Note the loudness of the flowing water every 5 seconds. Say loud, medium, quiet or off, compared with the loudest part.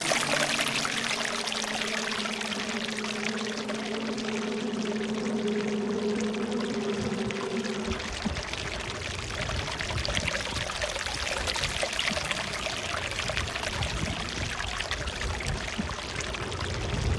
loud, medium, loud, medium.